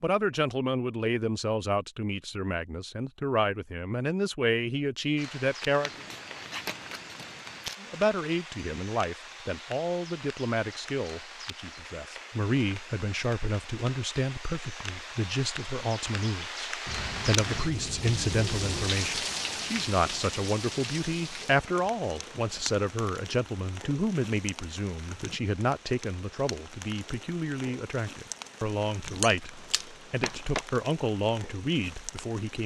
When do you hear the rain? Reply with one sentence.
You can hear the rain from 5.2 to 32.6 s.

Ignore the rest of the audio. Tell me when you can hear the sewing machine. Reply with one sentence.
You can't hear the sewing machine here.